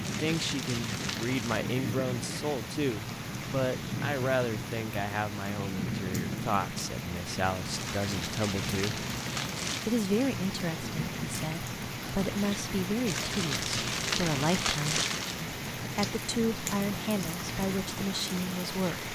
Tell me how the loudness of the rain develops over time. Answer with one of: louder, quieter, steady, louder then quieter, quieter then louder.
steady.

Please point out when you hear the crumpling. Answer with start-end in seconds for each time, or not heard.
0.0-1.6, 7.8-10.0, 13.1-15.4.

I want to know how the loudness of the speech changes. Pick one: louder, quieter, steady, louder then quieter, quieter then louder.
steady.